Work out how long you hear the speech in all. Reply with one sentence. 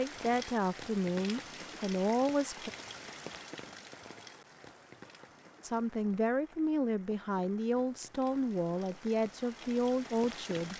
The speech can be heard for 8 seconds in total.